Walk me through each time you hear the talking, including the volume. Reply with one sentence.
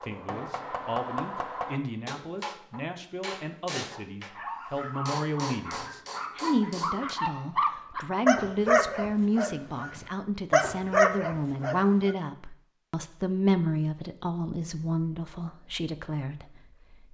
The talking can be heard from 0.0 to 17.0 s, getting louder.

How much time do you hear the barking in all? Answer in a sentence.
You can hear the barking for 8 seconds altogether.